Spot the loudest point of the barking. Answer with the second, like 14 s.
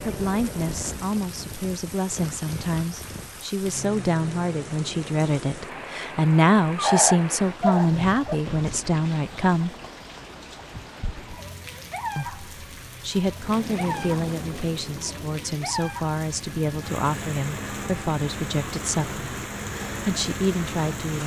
7 s.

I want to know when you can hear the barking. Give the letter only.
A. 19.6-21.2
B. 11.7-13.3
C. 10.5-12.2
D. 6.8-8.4
D.